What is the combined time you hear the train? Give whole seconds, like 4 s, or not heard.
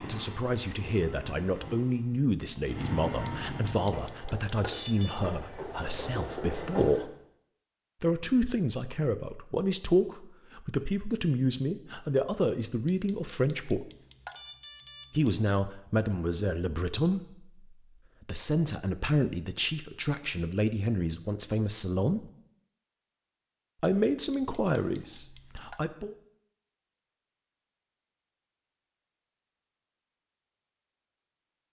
7 s.